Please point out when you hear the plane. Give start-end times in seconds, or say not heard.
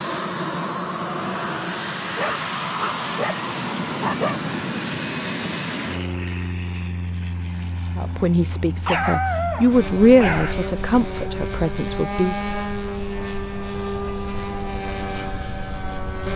0.0-16.3.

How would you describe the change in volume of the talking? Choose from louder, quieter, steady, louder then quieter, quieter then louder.
louder then quieter.